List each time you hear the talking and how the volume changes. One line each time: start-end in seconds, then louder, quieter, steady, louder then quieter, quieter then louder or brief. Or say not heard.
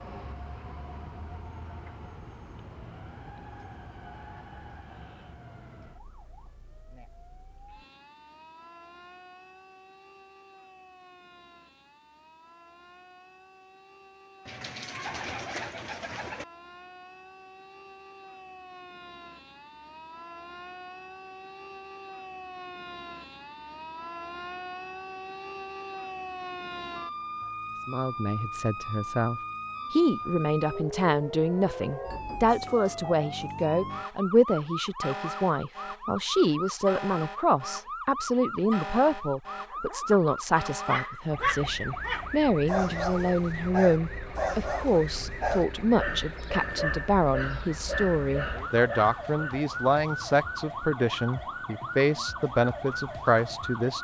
27.9-53.9 steady.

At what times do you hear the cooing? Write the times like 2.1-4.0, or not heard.
14.4-16.4.